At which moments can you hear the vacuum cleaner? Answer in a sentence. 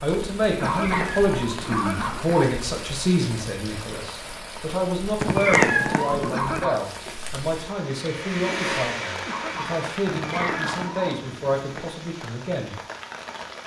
You can hear the vacuum cleaner from 7.8 to 10.0 s.